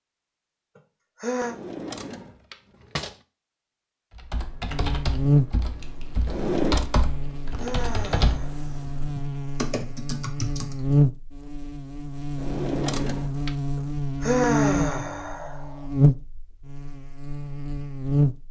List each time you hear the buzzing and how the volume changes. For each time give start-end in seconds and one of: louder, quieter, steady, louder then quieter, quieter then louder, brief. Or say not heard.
4.7-18.4 quieter then louder.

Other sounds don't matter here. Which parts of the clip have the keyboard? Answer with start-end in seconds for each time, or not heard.
4.2-10.9.